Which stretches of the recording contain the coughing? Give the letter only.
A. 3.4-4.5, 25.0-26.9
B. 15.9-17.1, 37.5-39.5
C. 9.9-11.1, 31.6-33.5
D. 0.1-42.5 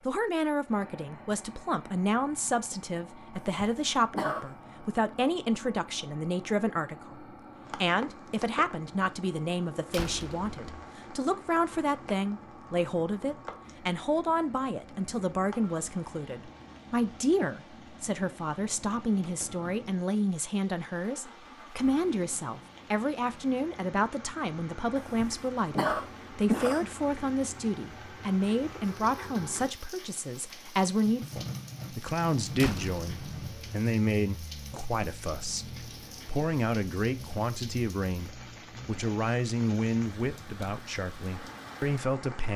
A.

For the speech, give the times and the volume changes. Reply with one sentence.
You can hear the speech from 0.1 to 42.5 s, at a steady volume.